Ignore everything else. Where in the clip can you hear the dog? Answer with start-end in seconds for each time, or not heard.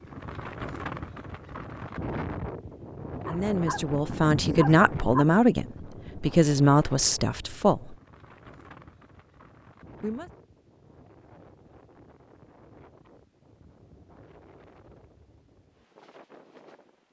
3.2-5.2.